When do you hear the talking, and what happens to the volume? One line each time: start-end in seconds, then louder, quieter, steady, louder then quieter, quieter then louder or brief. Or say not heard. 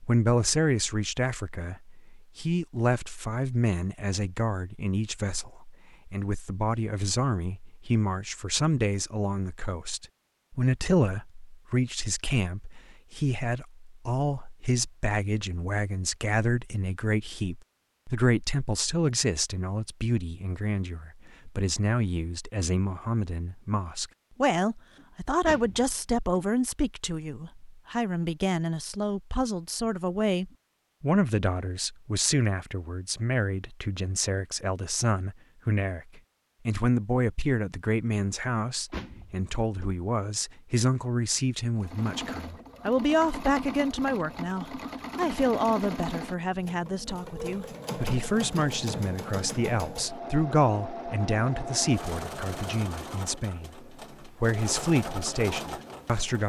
0.0-56.4 steady.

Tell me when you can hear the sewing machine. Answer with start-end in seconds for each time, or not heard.
41.8-56.4.